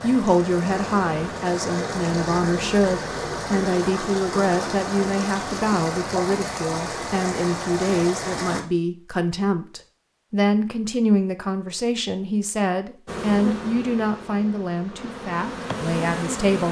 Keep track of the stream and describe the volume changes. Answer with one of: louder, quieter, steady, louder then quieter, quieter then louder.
steady.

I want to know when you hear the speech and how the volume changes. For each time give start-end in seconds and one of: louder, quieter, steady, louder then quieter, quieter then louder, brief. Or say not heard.
0.0-16.6 steady.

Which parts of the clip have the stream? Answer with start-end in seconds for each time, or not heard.
0.0-8.6.